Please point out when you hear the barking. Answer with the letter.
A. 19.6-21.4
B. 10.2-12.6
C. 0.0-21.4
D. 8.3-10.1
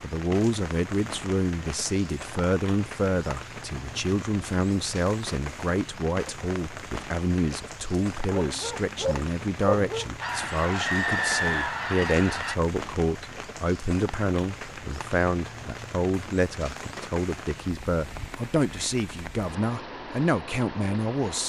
D.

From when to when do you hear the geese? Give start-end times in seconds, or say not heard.
10.2-12.6.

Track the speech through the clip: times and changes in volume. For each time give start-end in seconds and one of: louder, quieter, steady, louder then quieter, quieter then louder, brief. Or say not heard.
0.0-21.4 steady.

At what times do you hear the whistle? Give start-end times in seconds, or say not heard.
10.8-11.8.